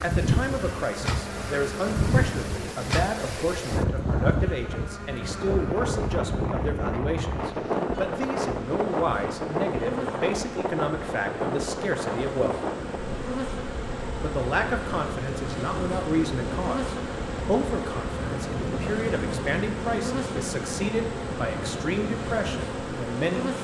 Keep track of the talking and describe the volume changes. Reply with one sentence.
The loudness of the talking stays about the same.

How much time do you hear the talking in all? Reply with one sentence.
You can hear the talking for 22 seconds altogether.